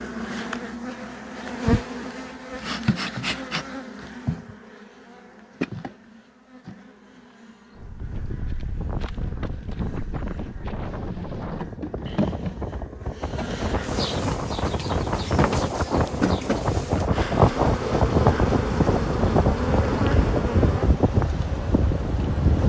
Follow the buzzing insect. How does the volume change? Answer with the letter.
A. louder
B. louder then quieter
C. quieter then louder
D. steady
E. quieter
C.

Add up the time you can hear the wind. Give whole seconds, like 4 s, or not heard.
15 s.